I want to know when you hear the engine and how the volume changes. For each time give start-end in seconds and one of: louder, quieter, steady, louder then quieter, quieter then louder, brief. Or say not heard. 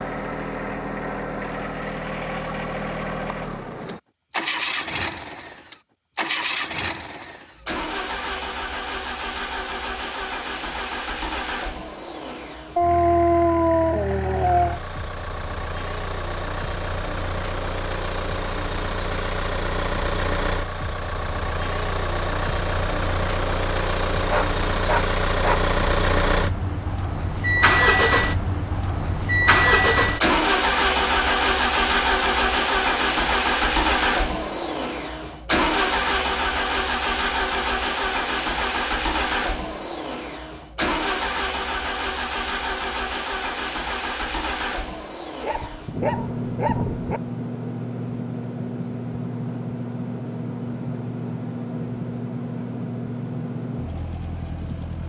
0.0-55.0 louder then quieter.